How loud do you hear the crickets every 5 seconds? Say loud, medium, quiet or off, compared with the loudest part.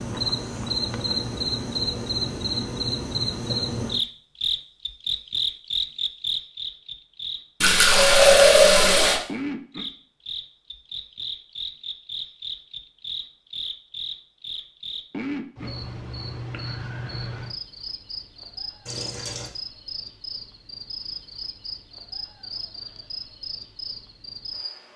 loud, loud, medium, medium, medium.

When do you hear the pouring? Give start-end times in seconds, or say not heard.
7.6-9.2, 18.9-19.5.